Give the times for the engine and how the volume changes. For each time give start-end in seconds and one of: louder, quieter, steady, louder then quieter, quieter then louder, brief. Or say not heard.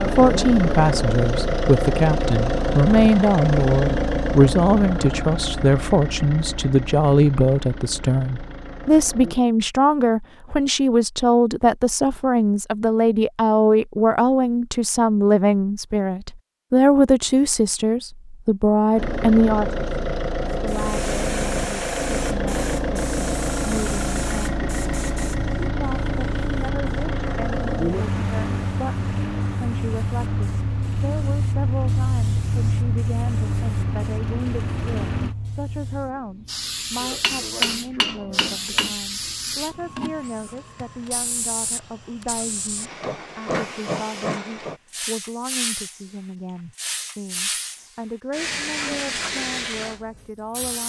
0.0-9.4 quieter
18.9-35.4 quieter.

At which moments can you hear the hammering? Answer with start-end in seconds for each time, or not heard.
37.0-39.0.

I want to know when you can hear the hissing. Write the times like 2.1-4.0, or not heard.
20.6-50.8.